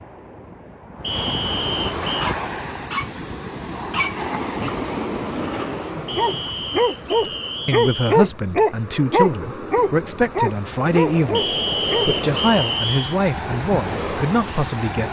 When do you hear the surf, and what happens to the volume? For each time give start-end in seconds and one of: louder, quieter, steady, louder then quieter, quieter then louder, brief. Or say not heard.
0.0-15.0 quieter then louder.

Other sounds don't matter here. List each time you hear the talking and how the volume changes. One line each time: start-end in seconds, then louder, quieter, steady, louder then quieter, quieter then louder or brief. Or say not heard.
7.7-15.0 steady.